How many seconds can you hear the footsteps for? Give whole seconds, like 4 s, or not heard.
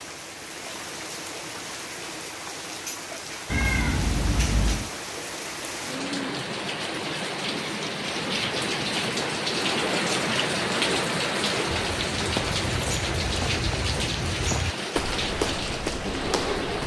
5 s.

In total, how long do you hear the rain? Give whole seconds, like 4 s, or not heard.
17 s.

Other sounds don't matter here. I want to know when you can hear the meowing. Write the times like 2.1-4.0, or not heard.
3.5-4.9.